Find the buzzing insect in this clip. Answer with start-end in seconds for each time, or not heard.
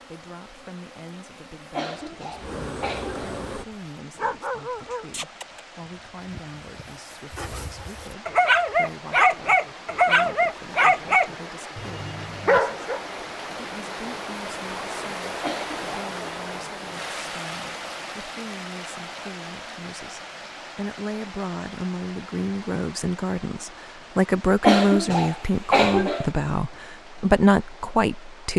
0.0-3.6.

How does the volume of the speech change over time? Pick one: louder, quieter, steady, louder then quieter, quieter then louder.
louder.